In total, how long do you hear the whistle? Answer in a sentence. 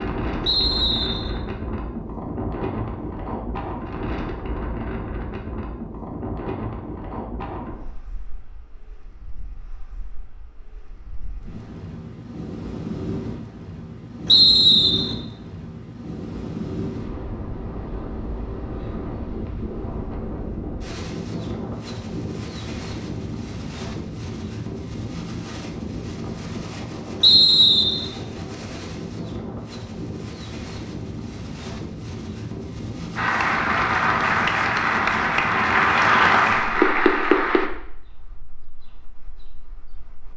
You can hear the whistle for 3 seconds altogether.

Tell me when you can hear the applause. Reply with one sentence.
You can hear the applause from 33.1 to 37.7 s.